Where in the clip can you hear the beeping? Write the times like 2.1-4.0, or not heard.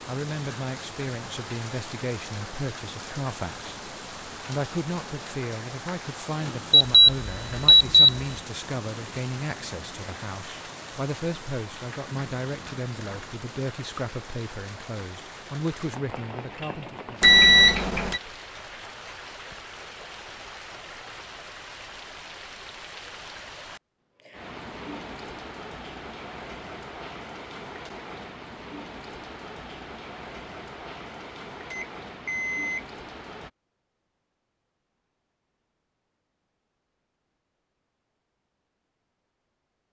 6.9-8.2, 17.2-18.2, 31.7-32.9.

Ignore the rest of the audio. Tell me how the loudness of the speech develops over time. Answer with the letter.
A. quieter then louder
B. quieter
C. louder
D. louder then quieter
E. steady
E.